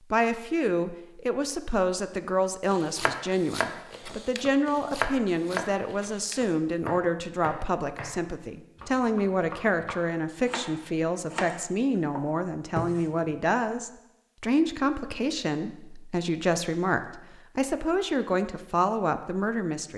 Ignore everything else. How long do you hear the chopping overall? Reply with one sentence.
You can hear the chopping for 10 seconds altogether.